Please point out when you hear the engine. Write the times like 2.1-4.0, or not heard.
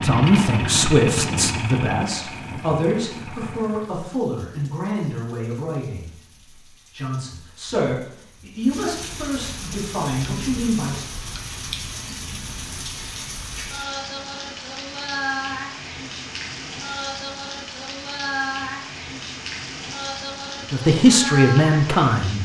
0.0-4.0.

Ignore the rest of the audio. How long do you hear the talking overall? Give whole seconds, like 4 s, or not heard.
12 s.